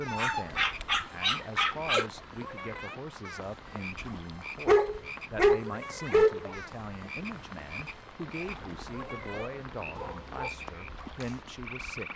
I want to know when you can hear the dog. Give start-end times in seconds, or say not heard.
0.1-2.0, 4.7-6.5, 8.4-10.5.